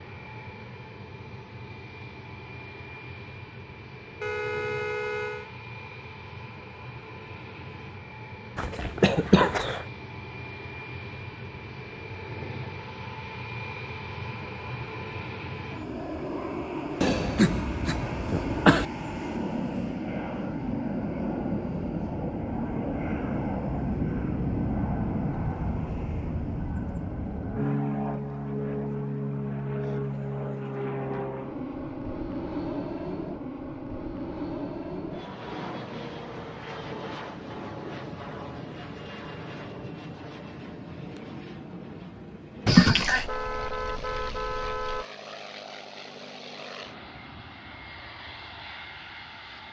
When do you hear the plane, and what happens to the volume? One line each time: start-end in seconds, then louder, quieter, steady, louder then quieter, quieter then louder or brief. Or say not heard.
0.0-49.6 louder then quieter.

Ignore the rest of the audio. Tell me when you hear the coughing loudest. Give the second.
43 s.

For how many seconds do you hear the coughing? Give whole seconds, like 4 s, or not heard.
4 s.